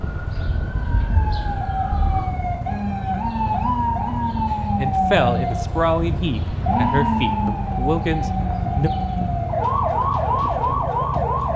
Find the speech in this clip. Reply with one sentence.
The speech can be heard from 4.8 to 8.9 s.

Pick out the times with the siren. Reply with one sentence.
The siren can be heard from 0.0 to 11.5 s.